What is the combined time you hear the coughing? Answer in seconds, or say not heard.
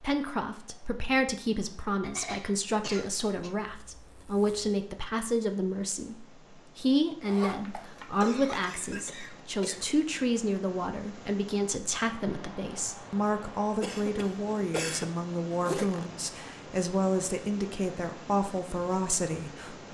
5 s.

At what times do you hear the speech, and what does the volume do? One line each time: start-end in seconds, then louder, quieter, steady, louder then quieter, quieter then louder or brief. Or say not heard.
0.0-19.9 steady.